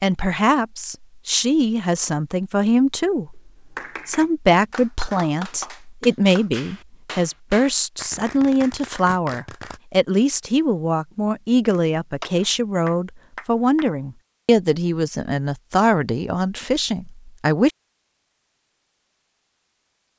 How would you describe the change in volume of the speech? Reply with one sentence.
The volume of the speech stays about the same.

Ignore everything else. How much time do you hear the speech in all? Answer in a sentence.
You can hear the speech for 17 seconds altogether.